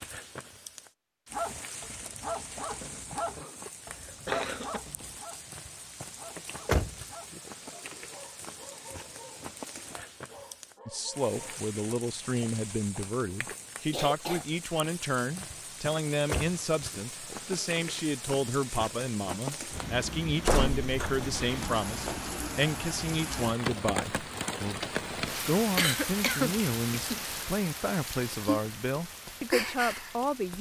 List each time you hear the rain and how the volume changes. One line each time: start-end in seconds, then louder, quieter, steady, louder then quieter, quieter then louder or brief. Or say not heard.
0.0-30.5 louder.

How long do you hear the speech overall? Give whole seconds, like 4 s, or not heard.
20 s.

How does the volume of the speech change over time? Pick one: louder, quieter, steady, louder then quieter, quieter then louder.
steady.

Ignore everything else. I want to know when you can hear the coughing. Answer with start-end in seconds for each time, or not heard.
2.8-4.8, 13.4-14.4, 25.8-27.2.